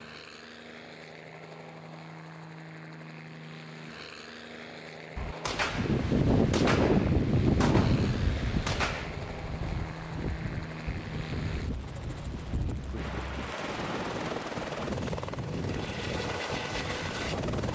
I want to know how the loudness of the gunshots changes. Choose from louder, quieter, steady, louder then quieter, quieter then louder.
quieter then louder.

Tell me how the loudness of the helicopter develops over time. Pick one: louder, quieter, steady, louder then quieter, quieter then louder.
louder.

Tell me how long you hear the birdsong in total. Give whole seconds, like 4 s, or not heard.
not heard.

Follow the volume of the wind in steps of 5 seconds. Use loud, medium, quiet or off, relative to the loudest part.
off, loud, medium, medium.